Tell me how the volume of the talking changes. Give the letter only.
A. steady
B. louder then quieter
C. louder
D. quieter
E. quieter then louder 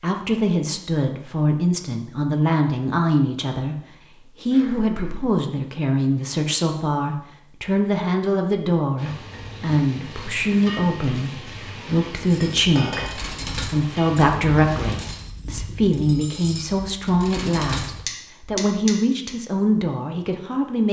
A.